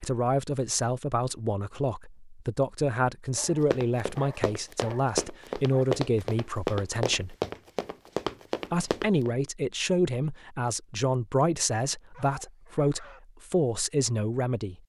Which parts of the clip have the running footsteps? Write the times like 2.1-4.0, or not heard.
3.3-9.3.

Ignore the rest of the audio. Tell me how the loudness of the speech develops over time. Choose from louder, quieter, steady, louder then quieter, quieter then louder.
steady.